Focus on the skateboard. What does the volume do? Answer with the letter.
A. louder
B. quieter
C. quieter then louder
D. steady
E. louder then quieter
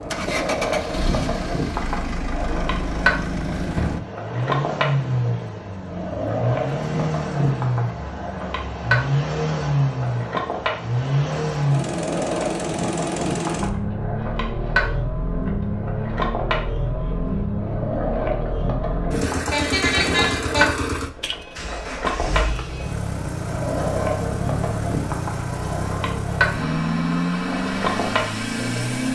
D.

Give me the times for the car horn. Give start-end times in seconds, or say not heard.
19.3-20.6.